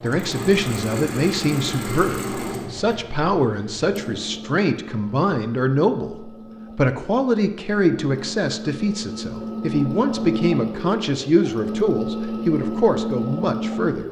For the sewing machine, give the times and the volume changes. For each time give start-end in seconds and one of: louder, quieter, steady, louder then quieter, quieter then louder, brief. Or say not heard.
0.0-14.0 quieter then louder.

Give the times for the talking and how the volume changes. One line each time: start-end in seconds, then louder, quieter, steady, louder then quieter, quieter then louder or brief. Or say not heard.
0.0-14.0 steady.